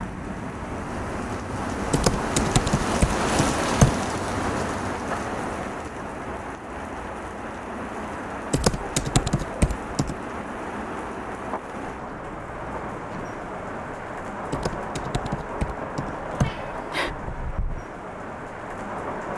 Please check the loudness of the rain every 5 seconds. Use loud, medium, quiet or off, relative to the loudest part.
loud, medium, medium, medium.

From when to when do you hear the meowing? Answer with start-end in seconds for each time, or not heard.
16.4-17.1.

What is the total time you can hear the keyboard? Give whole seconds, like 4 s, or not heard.
6 s.